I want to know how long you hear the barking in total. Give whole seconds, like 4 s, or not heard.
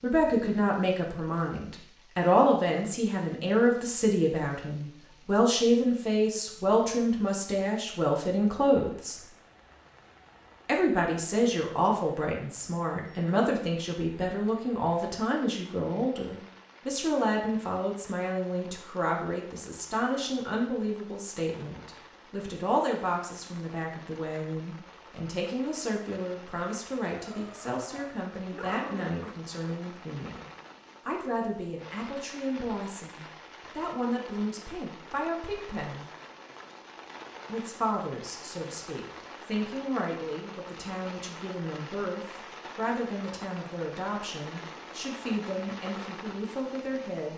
2 s.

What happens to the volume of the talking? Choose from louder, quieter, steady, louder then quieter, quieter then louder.
quieter.